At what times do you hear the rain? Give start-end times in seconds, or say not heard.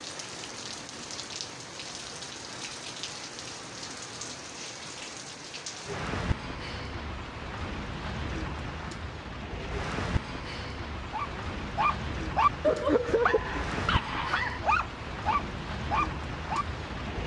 0.0-17.2.